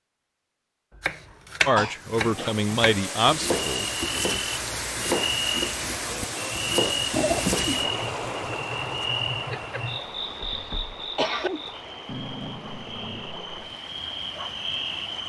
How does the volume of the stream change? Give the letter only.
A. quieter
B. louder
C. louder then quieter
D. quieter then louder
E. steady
A.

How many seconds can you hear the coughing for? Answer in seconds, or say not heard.
4 s.